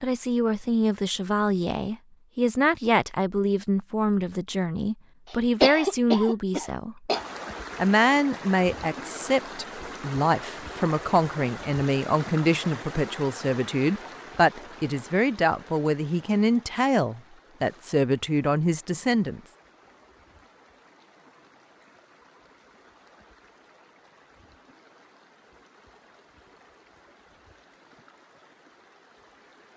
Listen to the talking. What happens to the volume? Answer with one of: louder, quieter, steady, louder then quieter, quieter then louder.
steady.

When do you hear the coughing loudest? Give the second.
6 s.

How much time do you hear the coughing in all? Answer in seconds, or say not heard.
2 s.